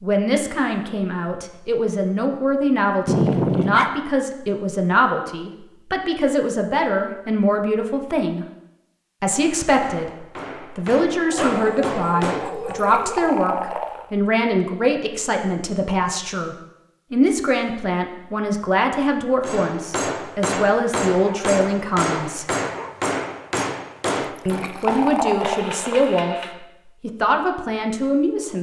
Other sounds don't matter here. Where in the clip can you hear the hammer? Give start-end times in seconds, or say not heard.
9.3-12.8, 19.4-26.6.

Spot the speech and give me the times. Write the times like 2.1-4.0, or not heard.
0.0-8.4, 9.2-22.4, 24.4-28.5.